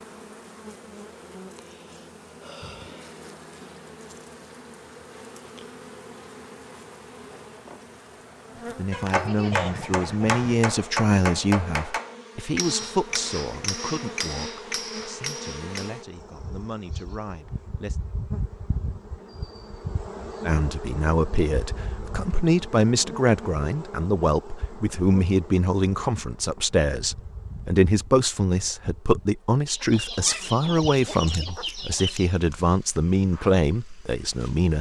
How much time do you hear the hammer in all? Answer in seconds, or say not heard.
7 s.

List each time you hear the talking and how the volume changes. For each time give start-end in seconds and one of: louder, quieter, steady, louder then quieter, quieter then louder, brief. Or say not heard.
8.7-18.0 quieter
20.4-34.7 steady.